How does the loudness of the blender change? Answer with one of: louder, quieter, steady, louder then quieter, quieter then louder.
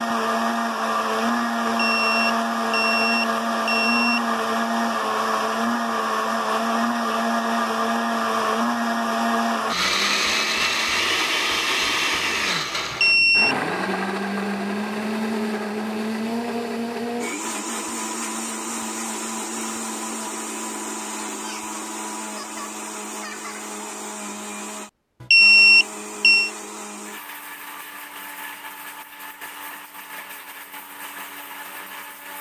quieter.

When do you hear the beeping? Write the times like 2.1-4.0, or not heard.
1.8-4.2, 12.9-13.6, 25.2-26.5.